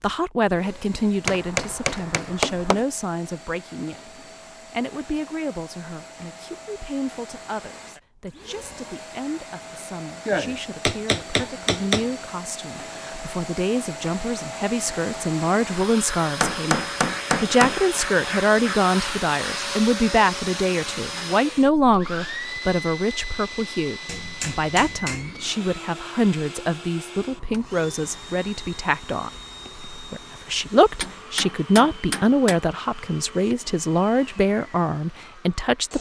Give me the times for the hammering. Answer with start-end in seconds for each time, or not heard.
1.2-2.9, 10.2-12.1, 16.4-17.8, 24.1-25.4, 31.0-32.6.